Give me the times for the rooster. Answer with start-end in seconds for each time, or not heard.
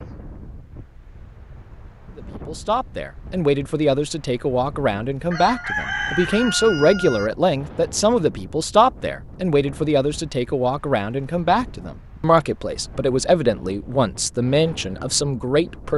5.3-7.3.